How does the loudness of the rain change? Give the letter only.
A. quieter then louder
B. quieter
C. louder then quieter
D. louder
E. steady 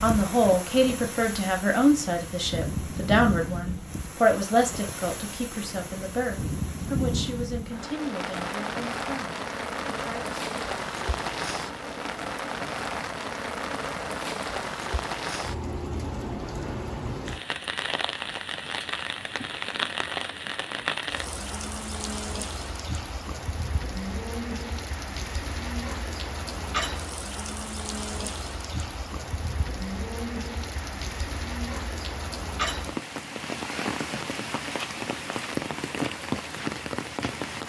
E.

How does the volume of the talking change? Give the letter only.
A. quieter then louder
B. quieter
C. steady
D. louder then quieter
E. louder
B.